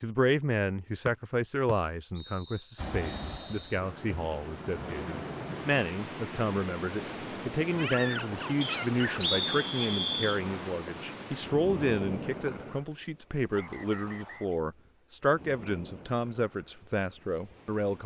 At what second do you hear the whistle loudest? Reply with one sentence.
The loudest moment of the whistle is at 9 seconds.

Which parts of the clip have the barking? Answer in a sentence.
You can hear the barking from 7.7 to 9.3 s.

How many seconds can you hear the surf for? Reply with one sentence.
You can hear the surf for 15 seconds altogether.